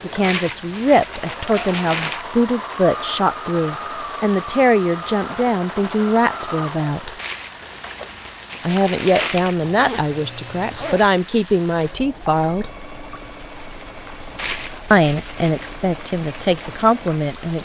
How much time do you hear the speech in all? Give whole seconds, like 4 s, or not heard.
14 s.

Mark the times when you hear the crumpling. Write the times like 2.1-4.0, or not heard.
0.2-2.2, 7.2-9.7, 14.3-15.7.